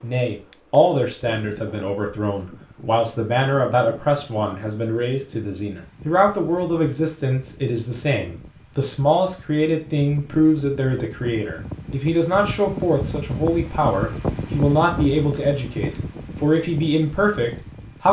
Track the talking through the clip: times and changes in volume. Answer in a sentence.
The talking can be heard from 0.0 to 18.0 s, at a steady volume.